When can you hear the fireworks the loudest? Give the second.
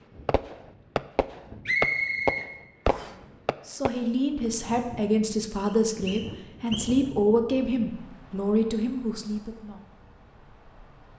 2 s.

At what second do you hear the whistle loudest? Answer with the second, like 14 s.
2 s.